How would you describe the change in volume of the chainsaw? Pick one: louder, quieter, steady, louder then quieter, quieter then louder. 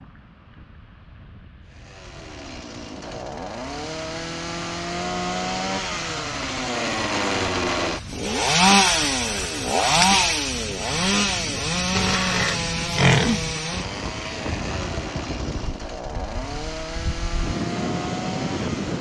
louder then quieter.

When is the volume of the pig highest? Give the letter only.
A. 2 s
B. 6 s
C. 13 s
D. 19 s
C.